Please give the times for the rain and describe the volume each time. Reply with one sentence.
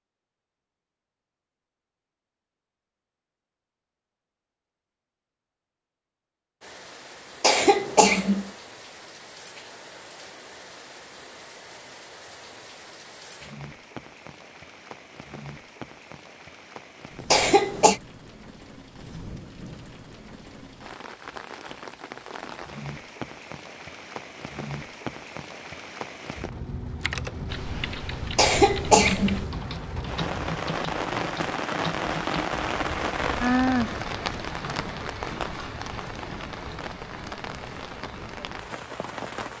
You can hear the rain from 6.6 to 39.5 s, getting louder.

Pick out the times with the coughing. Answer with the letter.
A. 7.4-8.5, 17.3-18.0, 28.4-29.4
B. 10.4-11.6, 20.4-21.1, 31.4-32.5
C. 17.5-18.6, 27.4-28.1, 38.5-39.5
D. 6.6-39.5
A.